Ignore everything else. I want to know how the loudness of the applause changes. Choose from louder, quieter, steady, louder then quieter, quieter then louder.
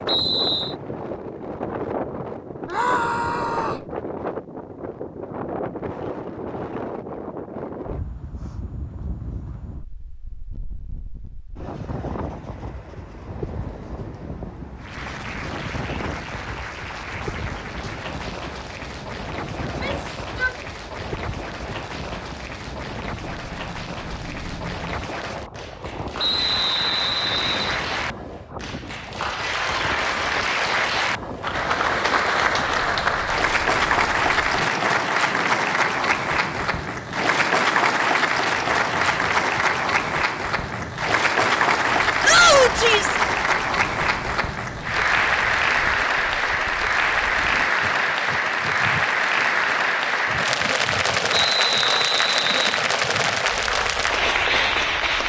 louder.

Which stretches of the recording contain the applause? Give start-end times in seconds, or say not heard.
14.8-55.2.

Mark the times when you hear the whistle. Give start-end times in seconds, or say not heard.
0.1-0.8, 26.1-27.9, 51.3-52.8.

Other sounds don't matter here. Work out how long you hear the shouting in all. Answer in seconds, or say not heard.
3 s.